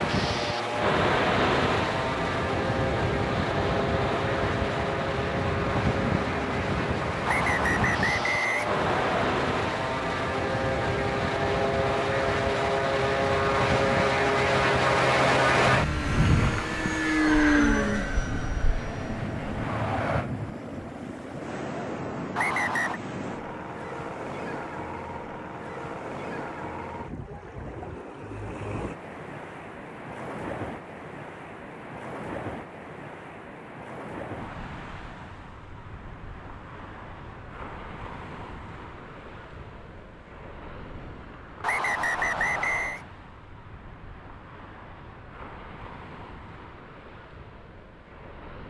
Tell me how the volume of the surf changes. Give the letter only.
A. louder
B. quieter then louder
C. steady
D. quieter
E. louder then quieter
D.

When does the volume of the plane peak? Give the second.
15 s.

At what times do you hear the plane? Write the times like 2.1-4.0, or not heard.
0.0-20.3.